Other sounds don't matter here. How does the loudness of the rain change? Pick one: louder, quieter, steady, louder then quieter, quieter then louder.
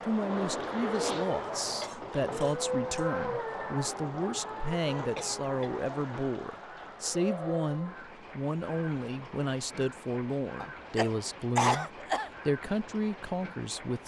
quieter.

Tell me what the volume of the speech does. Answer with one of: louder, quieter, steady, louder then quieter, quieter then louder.
steady.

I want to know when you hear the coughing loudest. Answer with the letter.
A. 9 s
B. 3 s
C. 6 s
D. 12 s
D.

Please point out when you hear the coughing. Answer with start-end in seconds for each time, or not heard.
1.8-3.0, 5.2-5.8, 10.6-12.3.